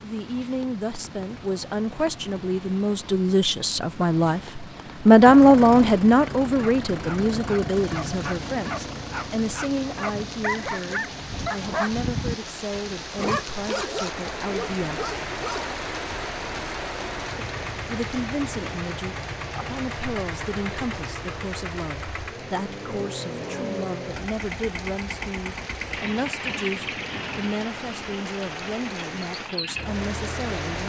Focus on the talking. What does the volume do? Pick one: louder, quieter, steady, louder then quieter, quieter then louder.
quieter.